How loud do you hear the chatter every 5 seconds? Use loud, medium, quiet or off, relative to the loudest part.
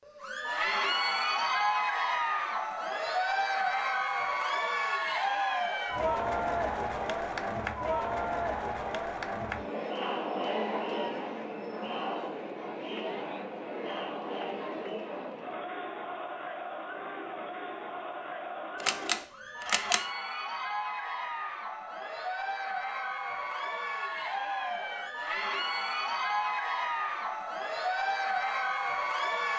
loud, loud, medium, medium, medium, loud.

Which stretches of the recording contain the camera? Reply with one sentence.
The camera can be heard from 18.8 to 20.1 s.